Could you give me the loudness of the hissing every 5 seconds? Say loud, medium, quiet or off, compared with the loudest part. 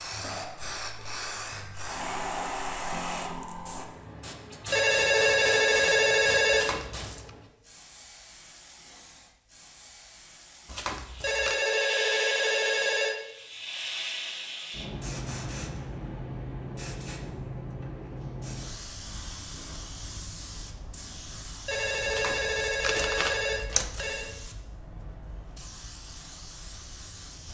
loud, medium, loud, loud, medium, medium.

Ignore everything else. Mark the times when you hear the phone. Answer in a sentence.
The phone can be heard from 4.7 to 6.7 s, from 11.2 to 13.2 s and from 21.6 to 24.3 s.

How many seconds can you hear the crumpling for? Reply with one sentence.
You can hear the crumpling for 4 seconds altogether.